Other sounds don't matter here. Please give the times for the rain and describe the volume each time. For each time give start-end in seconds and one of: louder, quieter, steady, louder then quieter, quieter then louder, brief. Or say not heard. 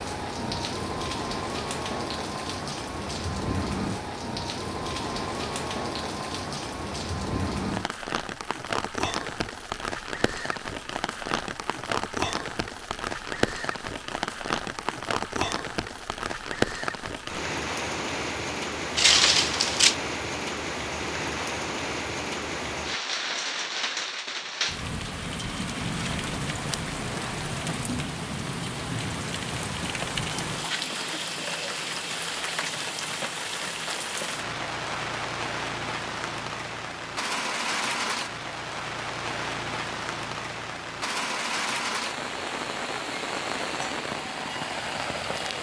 0.0-45.5 steady.